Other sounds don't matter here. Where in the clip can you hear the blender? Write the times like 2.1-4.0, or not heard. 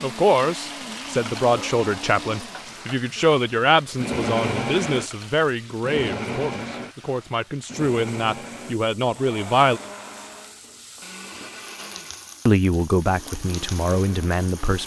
0.0-14.8.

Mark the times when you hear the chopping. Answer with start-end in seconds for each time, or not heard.
not heard.